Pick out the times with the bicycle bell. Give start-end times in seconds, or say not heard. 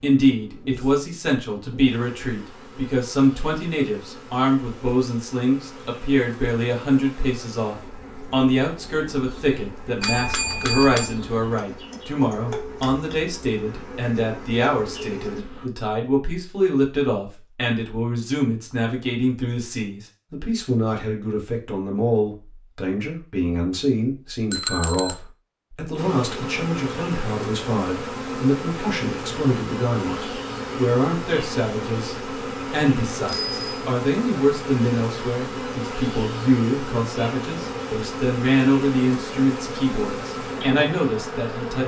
10.0-11.2, 24.5-25.2, 33.2-33.6.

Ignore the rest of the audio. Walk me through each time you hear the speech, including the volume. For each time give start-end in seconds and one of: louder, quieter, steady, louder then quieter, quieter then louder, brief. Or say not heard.
0.0-41.8 steady.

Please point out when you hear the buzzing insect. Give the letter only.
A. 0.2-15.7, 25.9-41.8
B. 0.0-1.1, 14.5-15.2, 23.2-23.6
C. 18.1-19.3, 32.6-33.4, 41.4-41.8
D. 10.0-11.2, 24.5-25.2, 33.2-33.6
A.